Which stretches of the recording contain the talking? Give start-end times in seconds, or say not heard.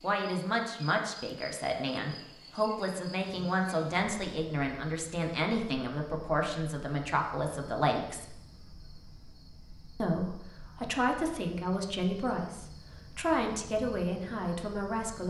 0.0-8.3, 10.0-15.2.